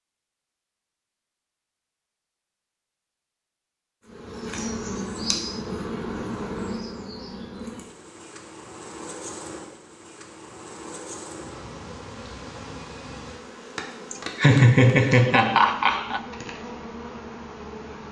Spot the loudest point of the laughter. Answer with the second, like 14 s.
15 s.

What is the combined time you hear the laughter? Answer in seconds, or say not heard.
2 s.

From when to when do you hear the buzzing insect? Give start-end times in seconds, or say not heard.
4.0-18.0.